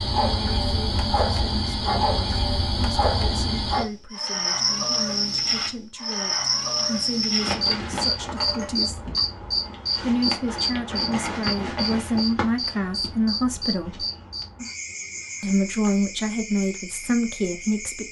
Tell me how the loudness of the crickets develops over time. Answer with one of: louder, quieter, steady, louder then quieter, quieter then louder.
quieter.